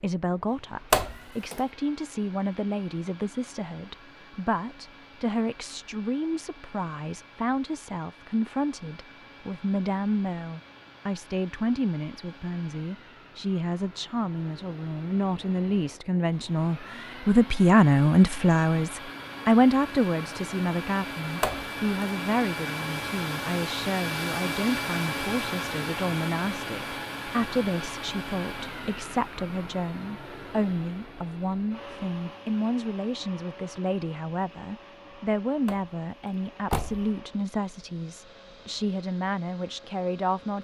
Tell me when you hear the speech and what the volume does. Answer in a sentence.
You can hear the speech from 0.0 to 40.5 s, getting louder then quieter.